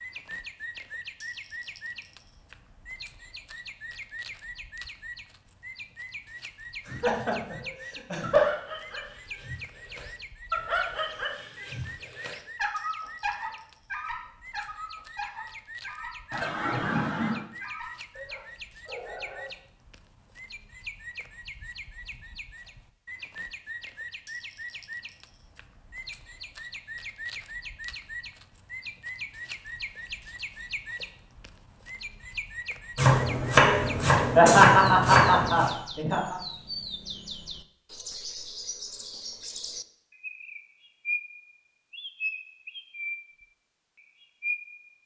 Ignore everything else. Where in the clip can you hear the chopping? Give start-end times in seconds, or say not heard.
33.0-35.7.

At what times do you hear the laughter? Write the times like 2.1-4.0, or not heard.
6.8-8.5, 16.3-17.4, 34.1-36.4.